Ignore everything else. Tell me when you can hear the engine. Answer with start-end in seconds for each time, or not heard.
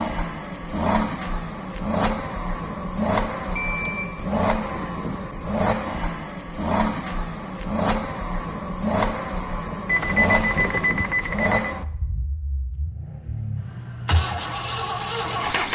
0.0-15.7.